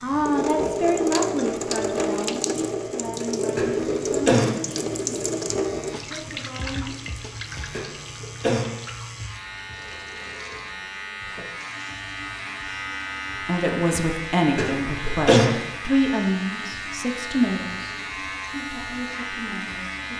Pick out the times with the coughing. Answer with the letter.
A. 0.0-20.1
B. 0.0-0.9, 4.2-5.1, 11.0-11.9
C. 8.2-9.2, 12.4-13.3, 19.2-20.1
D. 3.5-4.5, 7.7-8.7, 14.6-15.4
D.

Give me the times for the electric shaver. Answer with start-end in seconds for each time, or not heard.
0.0-20.1.